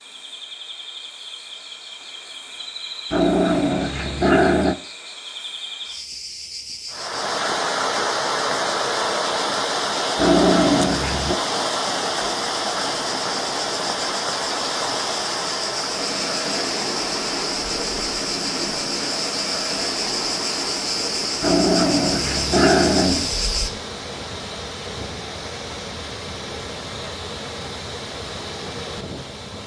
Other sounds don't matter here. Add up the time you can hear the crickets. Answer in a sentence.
The crickets can be heard for 24 seconds in total.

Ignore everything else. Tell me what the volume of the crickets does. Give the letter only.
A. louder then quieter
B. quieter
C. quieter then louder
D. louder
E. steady
D.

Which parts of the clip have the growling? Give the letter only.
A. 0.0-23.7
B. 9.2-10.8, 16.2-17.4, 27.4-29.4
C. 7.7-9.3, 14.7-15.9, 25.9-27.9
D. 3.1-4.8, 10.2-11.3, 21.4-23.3
D.